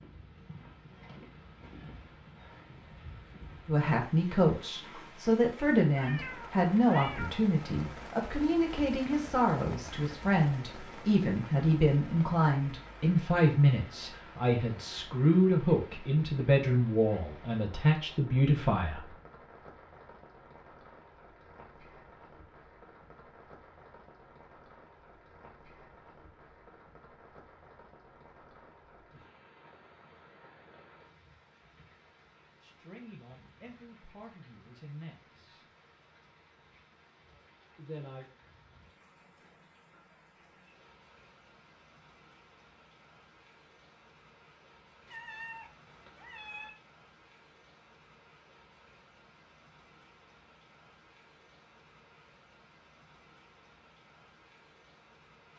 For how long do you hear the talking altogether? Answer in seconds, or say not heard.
19 s.